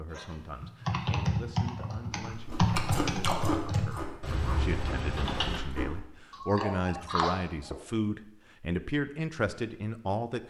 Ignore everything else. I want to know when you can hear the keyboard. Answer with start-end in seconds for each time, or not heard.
0.1-5.6.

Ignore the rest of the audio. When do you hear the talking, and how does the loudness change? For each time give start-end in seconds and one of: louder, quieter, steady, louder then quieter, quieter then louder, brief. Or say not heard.
0.0-10.4 louder.